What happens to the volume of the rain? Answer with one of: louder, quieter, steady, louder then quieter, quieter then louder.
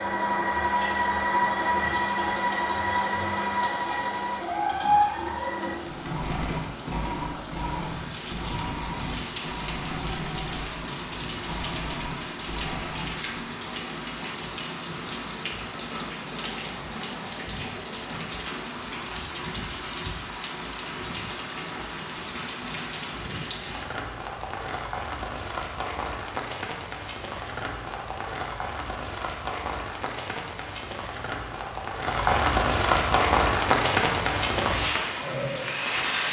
louder.